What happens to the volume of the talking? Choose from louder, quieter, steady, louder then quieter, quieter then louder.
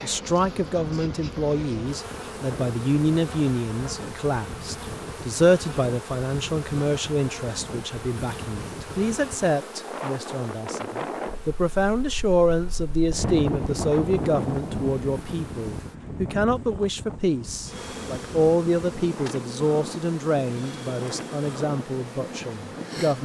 steady.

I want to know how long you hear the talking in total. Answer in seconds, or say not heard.
23 s.